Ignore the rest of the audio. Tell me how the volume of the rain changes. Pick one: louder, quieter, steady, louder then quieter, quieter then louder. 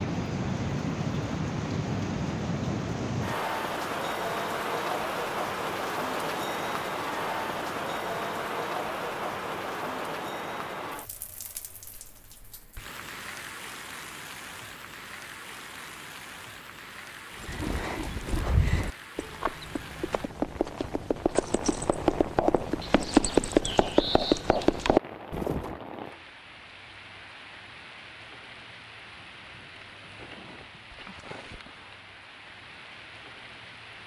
quieter.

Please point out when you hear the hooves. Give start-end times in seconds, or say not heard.
17.4-25.8.